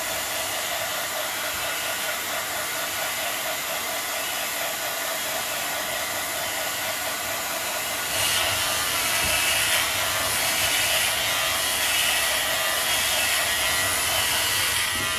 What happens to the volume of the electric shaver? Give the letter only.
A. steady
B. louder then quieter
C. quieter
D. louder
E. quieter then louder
D.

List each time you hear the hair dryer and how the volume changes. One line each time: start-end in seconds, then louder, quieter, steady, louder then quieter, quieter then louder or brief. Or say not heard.
0.0-15.1 steady.